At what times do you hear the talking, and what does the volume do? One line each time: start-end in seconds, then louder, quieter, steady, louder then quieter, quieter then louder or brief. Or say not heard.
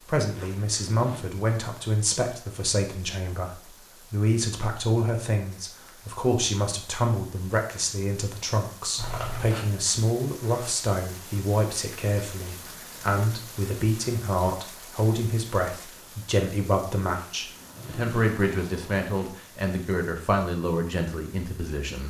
0.0-22.0 steady.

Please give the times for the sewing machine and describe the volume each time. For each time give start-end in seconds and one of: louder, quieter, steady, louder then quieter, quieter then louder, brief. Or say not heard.
not heard.